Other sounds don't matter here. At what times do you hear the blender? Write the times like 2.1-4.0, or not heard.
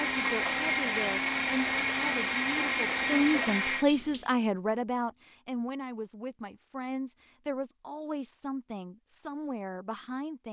0.0-3.9.